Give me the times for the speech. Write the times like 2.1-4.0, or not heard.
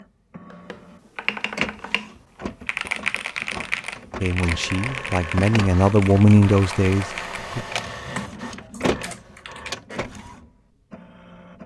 4.2-7.7.